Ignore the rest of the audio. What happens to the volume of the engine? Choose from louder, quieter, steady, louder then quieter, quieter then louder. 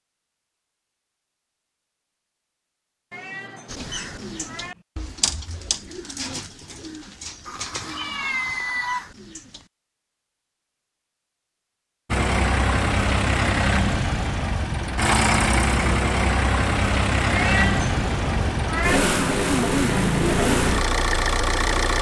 steady.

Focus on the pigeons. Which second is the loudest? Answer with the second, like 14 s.
5 s.